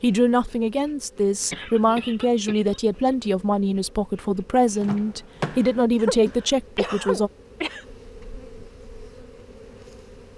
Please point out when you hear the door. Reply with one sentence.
You can hear the door from 4.8 to 5.8 s.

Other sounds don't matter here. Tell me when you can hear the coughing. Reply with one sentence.
You can hear the coughing from 1.5 to 3.1 s and from 6.0 to 7.8 s.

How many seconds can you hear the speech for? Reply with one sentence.
The speech can be heard for 7 seconds in total.